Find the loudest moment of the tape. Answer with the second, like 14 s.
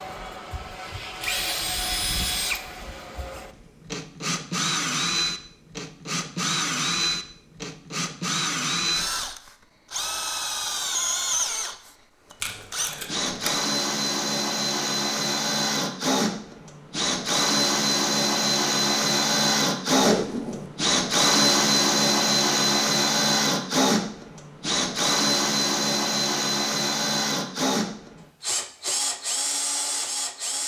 20 s.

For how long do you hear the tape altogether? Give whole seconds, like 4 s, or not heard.
2 s.